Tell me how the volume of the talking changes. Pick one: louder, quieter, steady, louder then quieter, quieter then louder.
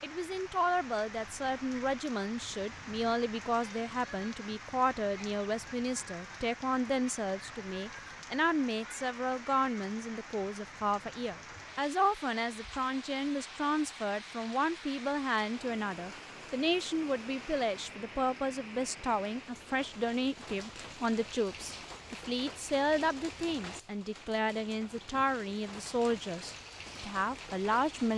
steady.